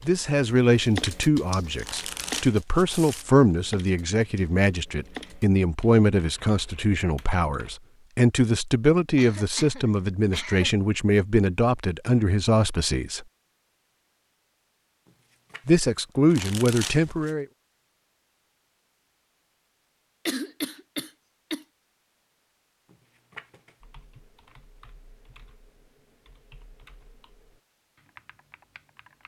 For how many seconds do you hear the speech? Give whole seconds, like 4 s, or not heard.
15 s.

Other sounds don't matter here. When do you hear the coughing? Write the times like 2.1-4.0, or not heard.
9.2-10.8, 20.2-21.6.